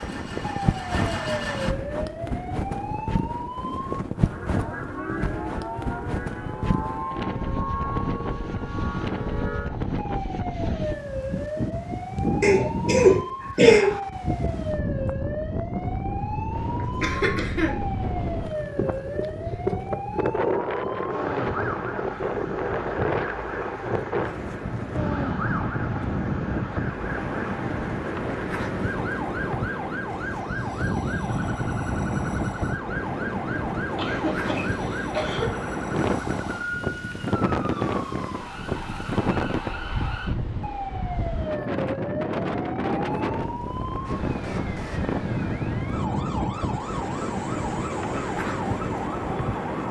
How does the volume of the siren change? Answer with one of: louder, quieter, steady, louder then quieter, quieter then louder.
steady.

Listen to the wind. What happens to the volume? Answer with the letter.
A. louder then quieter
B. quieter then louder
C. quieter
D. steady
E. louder
D.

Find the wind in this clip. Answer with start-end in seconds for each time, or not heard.
0.0-49.8.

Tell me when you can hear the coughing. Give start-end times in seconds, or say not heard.
12.4-13.9, 17.0-17.7, 34.0-35.5.